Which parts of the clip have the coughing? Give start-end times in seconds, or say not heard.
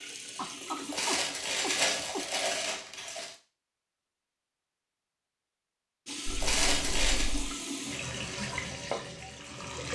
0.3-2.2, 6.2-7.5.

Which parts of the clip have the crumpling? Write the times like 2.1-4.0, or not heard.
0.9-3.4, 6.4-7.3.